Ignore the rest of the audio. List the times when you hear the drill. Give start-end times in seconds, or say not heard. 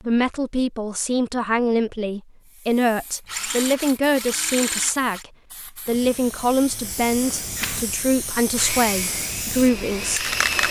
3.2-5.2, 7.5-10.6.